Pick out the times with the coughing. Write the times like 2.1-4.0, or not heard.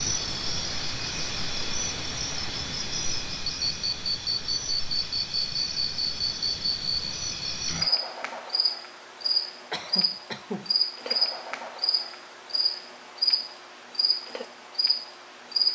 9.7-10.8.